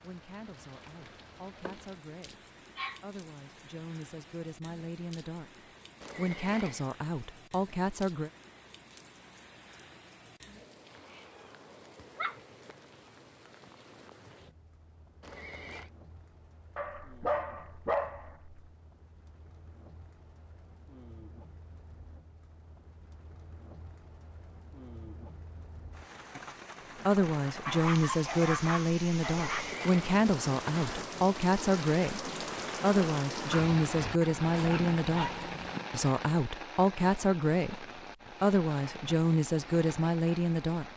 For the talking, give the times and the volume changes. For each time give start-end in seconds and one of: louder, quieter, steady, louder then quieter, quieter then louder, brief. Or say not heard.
0.0-5.5 louder
6.2-8.3 brief
27.1-40.9 steady.